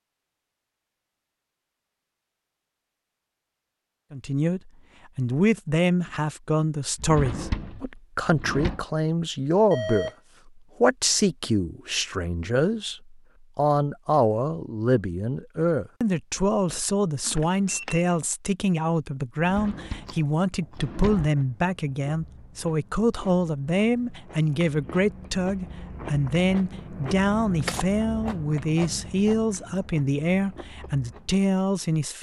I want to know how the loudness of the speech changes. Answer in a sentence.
The volume of the speech stays about the same.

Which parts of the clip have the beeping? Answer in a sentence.
The beeping can be heard from 9.7 to 10.2 s and from 17.2 to 18.1 s.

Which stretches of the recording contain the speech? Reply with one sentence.
The speech can be heard from 4.1 to 10.1 s and from 10.8 to 32.1 s.